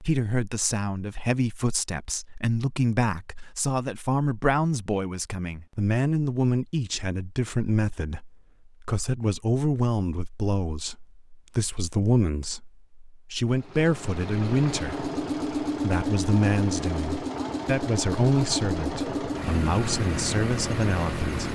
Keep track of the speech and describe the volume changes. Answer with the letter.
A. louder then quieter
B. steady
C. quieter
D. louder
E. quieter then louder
B.